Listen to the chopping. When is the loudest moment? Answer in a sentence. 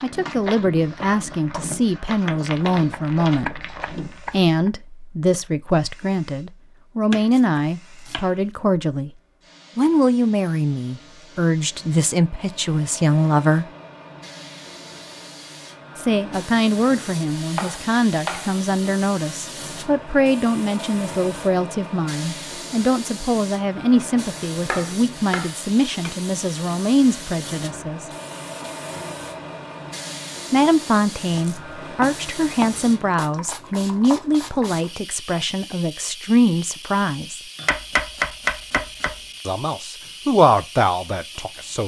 The loudest moment of the chopping is at 38 seconds.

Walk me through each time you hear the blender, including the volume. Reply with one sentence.
You can't hear the blender here.